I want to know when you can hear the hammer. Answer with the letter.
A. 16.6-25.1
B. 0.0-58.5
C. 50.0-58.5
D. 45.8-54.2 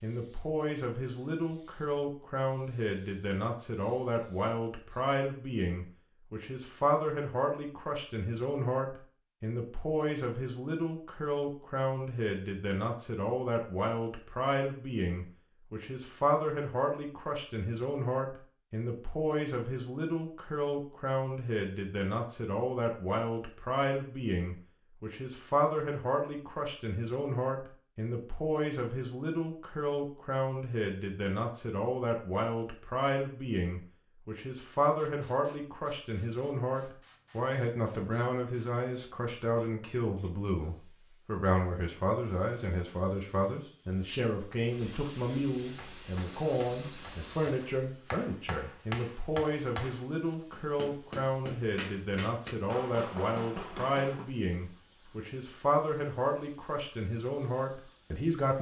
D.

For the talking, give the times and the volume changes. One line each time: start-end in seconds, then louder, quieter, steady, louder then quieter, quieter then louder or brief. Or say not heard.
0.0-58.5 steady.